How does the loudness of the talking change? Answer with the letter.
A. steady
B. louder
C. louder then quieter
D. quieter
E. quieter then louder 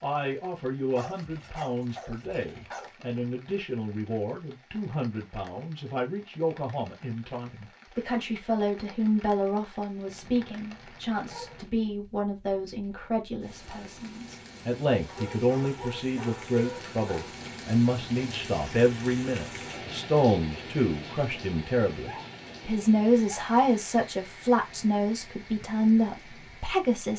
B.